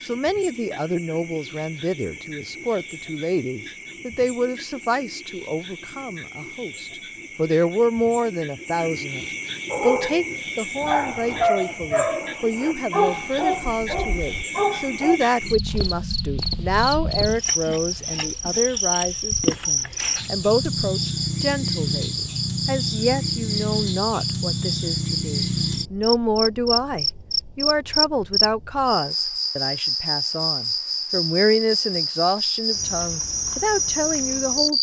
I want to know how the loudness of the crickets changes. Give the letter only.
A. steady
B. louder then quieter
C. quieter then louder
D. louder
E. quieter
D.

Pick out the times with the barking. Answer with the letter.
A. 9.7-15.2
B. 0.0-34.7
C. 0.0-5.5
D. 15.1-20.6
A.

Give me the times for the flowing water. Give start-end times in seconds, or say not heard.
not heard.